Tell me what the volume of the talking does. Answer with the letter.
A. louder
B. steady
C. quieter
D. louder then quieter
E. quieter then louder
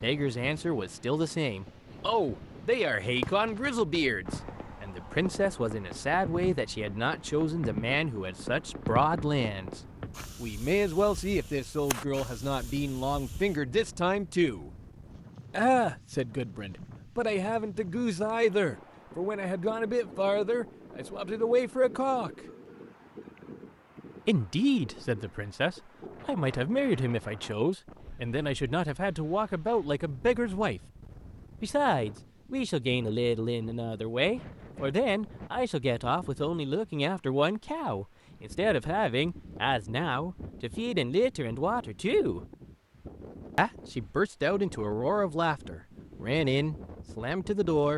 B.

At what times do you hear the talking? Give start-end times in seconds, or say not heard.
0.0-9.8, 10.4-14.7, 15.5-22.3, 24.2-30.8, 31.6-42.4, 43.5-47.9.